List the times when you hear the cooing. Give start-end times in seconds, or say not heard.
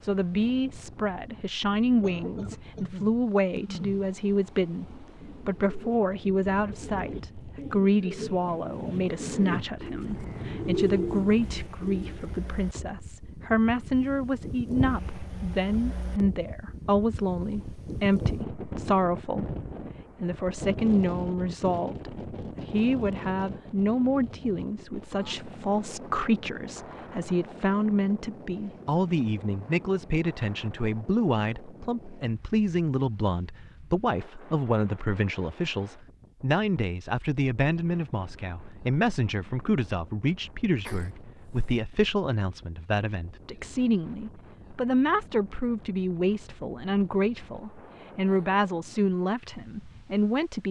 5.2-12.7.